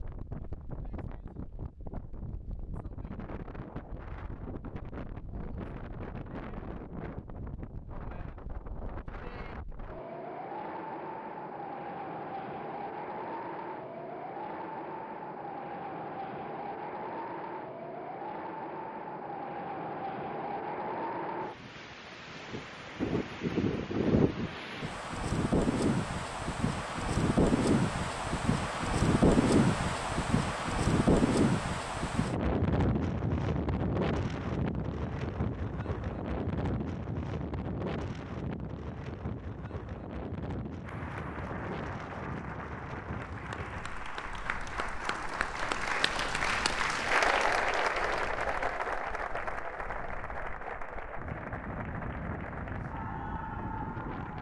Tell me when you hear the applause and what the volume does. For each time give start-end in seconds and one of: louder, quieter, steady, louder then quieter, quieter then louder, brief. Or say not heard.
40.8-54.3 louder then quieter.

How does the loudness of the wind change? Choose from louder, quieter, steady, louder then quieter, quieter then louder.
louder then quieter.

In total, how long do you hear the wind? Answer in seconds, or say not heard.
54 s.